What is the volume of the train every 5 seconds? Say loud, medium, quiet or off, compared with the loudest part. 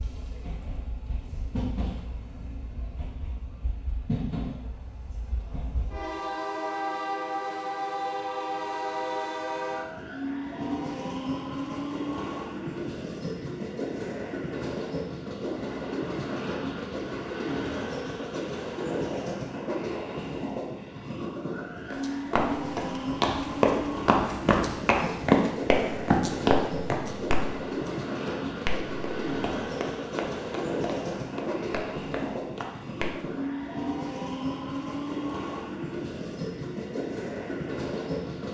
medium, loud, loud, loud, loud, loud, loud, loud.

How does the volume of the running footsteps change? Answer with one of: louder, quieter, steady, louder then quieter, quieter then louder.
quieter.